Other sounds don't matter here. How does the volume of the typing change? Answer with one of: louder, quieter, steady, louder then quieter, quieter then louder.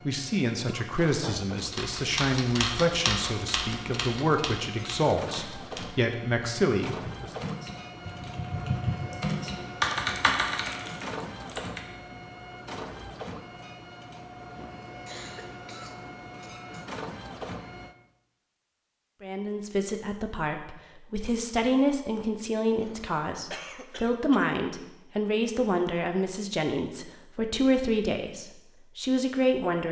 quieter then louder.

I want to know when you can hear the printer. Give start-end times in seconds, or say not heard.
0.0-17.9.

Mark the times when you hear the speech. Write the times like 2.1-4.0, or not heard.
0.0-7.3, 19.2-29.8.